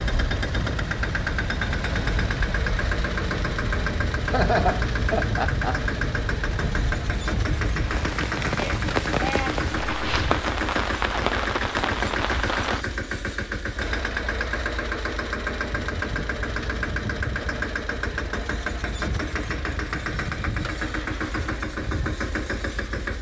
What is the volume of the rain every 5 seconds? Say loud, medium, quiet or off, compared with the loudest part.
medium, loud, loud, off, off.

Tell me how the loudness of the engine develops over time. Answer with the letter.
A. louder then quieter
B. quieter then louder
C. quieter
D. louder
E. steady
E.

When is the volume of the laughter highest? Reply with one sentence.
The volume of the laughter peaks at 5 seconds.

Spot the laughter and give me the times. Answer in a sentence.
The laughter can be heard from 4.3 to 5.8 s.